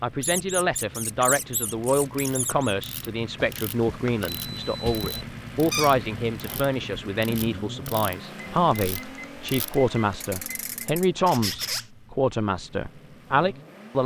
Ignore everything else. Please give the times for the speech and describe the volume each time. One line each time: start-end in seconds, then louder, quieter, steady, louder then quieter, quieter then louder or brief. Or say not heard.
0.0-14.0 steady.